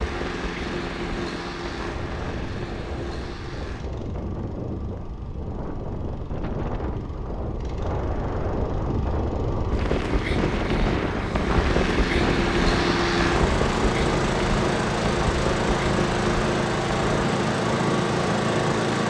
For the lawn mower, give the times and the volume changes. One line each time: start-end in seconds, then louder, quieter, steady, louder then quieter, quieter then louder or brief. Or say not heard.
0.0-19.0 quieter then louder.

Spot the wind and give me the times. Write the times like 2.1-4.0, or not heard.
0.0-18.9.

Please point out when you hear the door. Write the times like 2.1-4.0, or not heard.
not heard.